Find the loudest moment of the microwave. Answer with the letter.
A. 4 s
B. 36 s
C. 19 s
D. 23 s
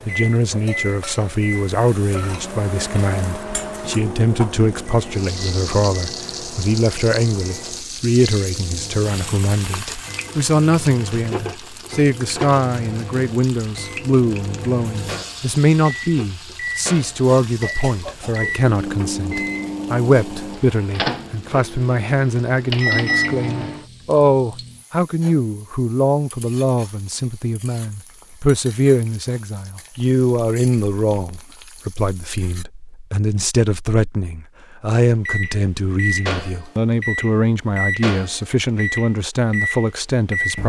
D.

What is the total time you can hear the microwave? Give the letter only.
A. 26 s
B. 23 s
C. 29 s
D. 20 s
C.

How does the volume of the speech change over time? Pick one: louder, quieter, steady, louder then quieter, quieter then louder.
steady.